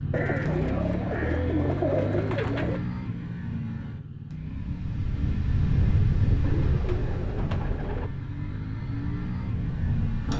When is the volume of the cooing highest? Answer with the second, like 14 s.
2 s.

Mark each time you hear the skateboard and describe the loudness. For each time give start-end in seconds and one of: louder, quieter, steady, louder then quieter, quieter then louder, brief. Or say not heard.
not heard.